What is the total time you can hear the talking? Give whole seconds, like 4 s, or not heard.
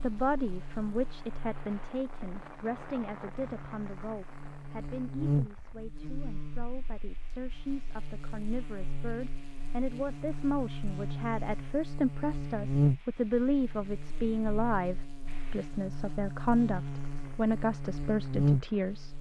19 s.